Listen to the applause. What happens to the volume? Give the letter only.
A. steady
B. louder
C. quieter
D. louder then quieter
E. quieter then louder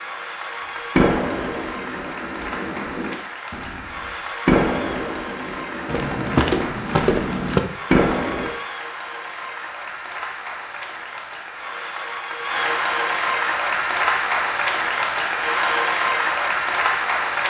B.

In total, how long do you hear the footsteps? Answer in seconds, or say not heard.
2 s.